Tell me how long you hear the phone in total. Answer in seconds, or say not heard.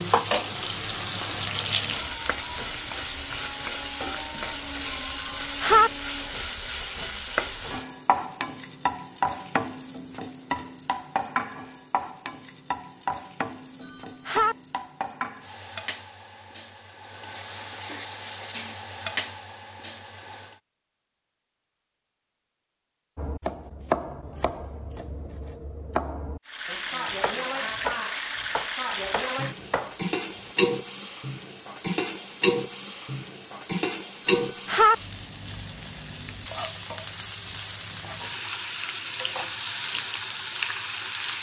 2 s.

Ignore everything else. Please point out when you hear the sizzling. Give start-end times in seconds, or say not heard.
0.0-20.6, 26.4-41.3.